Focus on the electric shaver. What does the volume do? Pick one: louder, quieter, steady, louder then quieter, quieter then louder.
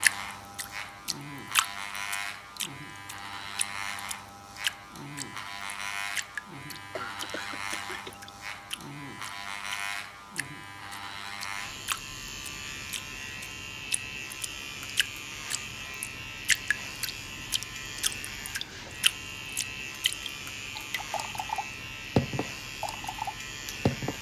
steady.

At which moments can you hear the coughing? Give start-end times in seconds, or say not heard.
7.0-8.3.